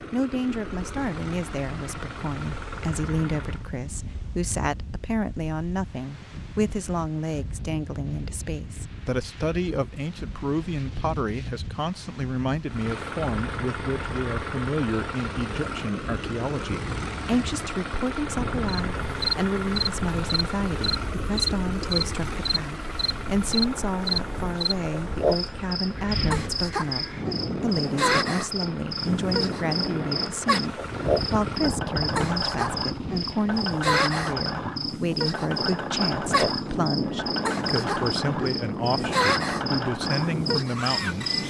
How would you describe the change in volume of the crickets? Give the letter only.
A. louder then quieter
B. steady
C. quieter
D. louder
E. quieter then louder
B.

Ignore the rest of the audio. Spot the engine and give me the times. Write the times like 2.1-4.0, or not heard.
0.0-3.7, 12.7-41.4.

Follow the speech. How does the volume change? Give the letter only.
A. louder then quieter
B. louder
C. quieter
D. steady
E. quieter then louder
D.